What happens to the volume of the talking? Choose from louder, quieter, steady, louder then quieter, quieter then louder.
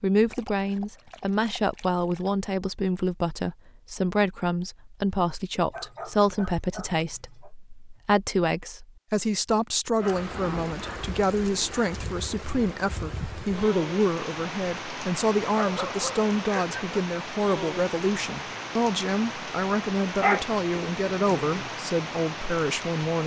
steady.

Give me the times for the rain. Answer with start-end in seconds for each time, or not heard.
9.9-23.2.